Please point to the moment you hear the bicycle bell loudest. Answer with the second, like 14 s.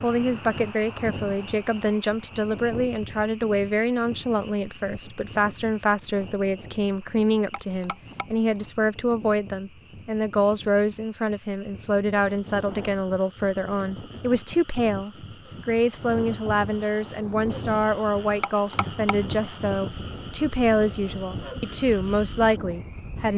19 s.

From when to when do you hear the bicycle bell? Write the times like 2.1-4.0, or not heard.
7.5-8.7, 18.4-19.6.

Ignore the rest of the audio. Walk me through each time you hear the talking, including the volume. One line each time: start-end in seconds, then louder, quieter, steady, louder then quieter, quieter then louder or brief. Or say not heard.
0.0-23.3 steady.